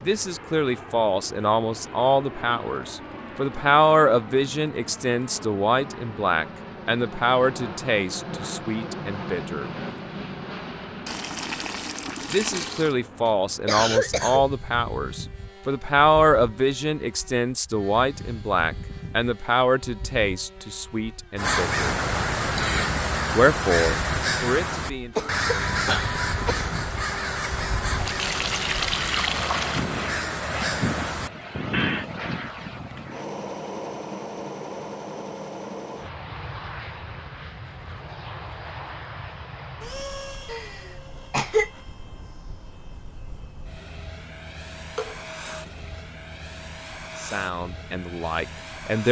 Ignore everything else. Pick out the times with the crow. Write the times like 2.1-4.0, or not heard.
21.4-32.0.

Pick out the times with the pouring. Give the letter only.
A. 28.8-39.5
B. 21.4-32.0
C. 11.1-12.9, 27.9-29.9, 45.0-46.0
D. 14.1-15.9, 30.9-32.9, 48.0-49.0
C.